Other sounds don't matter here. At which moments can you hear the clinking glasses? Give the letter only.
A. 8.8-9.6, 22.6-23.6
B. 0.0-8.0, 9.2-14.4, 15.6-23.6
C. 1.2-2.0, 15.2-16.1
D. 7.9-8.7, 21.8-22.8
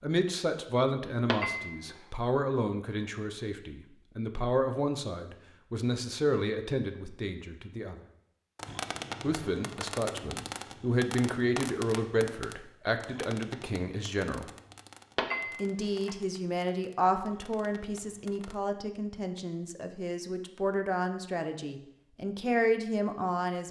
C.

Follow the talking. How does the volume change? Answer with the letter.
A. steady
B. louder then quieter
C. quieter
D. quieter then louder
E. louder
A.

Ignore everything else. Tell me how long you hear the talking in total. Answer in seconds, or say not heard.
21 s.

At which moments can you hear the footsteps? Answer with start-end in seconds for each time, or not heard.
not heard.